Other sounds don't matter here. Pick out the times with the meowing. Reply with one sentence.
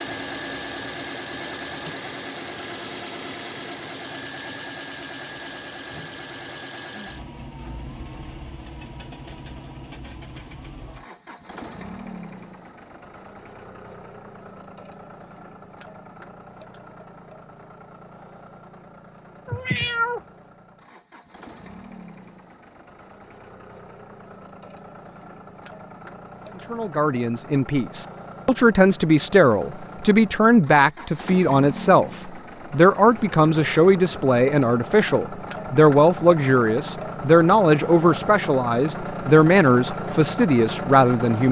The meowing can be heard from 19.4 to 20.2 s.